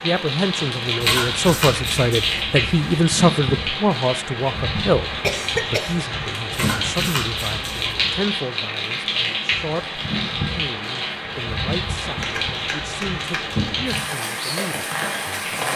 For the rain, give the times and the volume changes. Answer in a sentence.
You can hear the rain from 0.0 to 15.7 s, at a steady volume.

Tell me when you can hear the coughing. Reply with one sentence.
The coughing can be heard from 5.2 to 6.0 s.